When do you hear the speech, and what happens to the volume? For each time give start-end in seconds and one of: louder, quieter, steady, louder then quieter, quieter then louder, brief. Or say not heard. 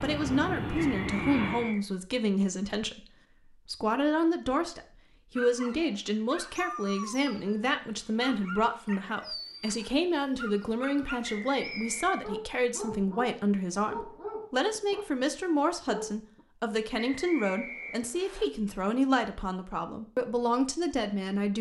0.0-21.5 steady.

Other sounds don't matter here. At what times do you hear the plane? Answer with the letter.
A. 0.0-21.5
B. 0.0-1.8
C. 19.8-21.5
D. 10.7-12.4
B.